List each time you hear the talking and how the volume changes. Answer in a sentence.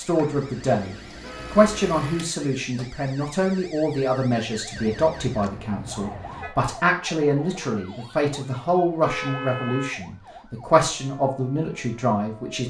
You can hear the talking from 0.0 to 12.6 s, at a steady volume.